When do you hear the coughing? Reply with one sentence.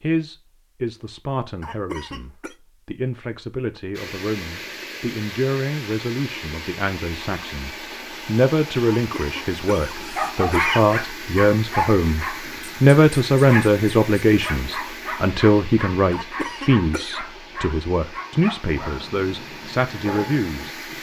The coughing can be heard from 1.6 to 2.5 s, from 8.9 to 10.8 s and from 16.1 to 17.2 s.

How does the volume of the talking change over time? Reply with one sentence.
The volume of the talking goes up, then down.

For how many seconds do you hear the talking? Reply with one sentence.
You can hear the talking for 21 seconds altogether.